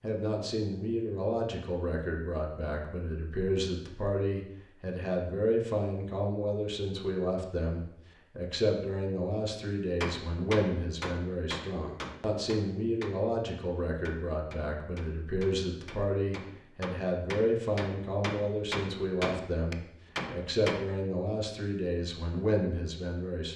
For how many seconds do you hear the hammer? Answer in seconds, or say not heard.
11 s.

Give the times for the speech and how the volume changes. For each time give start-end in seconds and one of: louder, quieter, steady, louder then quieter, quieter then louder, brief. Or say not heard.
0.0-23.5 steady.